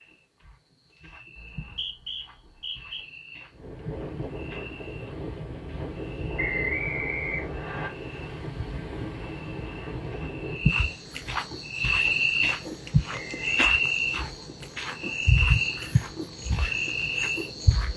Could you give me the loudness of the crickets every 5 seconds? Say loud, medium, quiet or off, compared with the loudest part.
quiet, quiet, loud, loud.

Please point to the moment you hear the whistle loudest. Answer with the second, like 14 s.
7 s.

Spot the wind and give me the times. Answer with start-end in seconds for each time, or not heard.
3.5-17.9.